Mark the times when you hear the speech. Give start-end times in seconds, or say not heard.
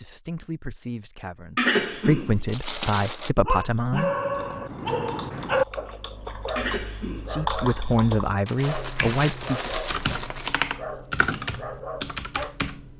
0.0-4.1, 7.3-9.7.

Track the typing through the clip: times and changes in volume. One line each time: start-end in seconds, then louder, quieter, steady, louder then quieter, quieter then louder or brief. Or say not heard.
3.7-12.9 louder.